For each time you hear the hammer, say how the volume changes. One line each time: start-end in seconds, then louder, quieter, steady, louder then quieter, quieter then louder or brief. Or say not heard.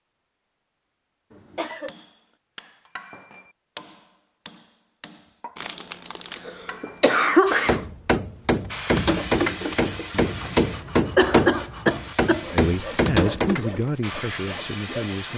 1.7-13.8 louder.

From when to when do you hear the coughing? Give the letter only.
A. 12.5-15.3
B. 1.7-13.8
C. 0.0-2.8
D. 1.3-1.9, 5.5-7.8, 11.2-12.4
D.